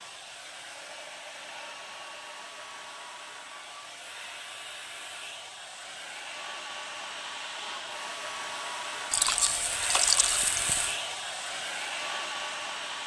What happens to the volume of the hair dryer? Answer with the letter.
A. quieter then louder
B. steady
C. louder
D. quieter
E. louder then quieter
C.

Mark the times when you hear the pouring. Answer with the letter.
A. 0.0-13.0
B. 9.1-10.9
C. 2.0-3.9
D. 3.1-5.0
B.